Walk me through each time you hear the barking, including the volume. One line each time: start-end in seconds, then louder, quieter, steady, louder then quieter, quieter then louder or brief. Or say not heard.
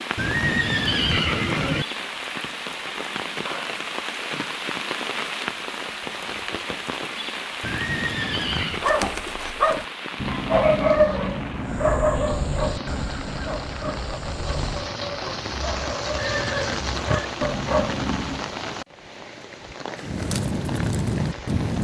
8.7-18.5 quieter then louder.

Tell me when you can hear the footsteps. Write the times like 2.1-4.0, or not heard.
not heard.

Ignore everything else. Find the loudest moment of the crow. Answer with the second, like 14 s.
21 s.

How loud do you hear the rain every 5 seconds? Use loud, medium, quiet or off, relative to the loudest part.
loud, loud, medium, loud, loud.